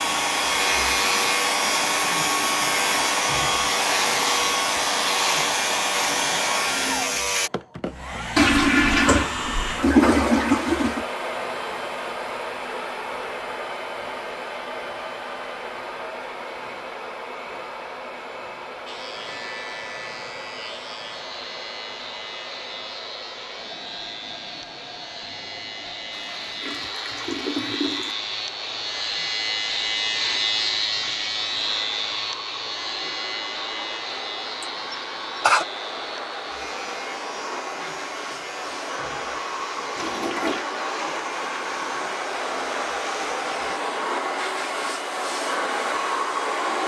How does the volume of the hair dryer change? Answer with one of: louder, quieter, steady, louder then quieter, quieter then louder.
quieter then louder.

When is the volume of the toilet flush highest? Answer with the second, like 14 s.
10 s.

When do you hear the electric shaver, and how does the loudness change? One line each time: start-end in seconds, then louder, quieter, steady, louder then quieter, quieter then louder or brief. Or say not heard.
0.0-7.5 steady
18.9-43.8 louder then quieter.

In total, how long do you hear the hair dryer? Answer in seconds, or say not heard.
47 s.